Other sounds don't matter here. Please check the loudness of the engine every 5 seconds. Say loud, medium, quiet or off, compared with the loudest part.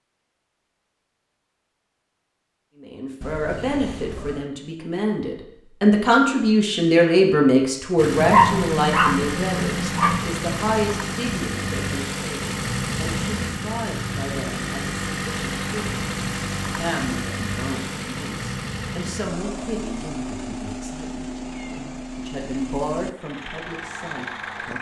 off, loud, loud, loud, medium.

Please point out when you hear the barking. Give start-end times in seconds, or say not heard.
8.2-10.2.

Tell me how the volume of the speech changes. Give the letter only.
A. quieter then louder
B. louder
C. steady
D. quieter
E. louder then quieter
D.